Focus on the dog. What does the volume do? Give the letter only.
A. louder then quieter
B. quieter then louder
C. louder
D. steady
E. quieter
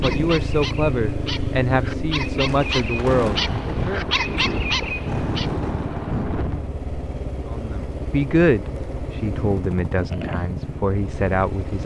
C.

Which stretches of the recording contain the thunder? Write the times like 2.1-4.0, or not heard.
2.5-6.7.